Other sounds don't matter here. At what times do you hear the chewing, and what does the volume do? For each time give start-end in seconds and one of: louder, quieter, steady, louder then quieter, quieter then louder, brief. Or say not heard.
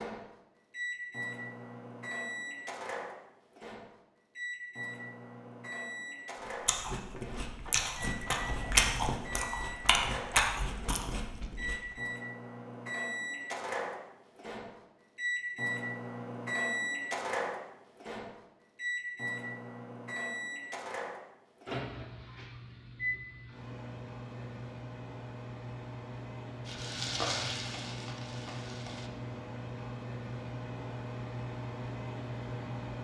6.7-11.8 louder then quieter.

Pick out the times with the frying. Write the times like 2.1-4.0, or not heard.
26.6-29.1.